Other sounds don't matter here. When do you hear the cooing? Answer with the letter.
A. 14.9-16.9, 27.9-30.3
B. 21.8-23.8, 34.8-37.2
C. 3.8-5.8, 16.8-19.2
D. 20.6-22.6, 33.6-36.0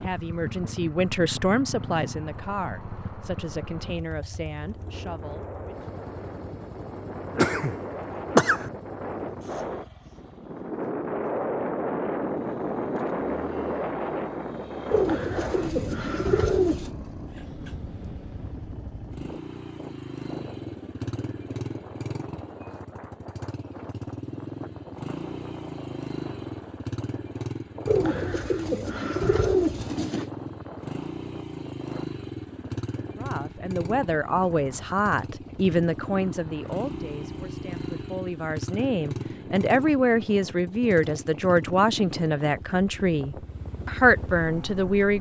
A.